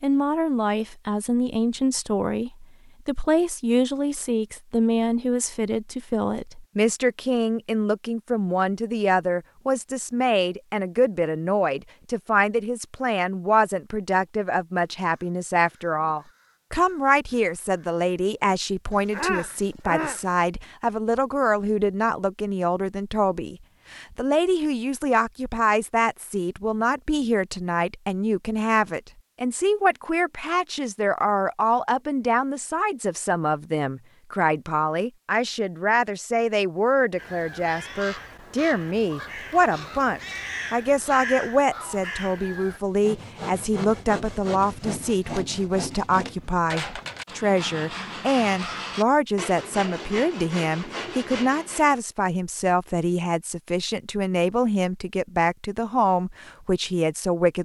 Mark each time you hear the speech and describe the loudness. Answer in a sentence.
The speech can be heard from 0.0 to 57.6 s, at a steady volume.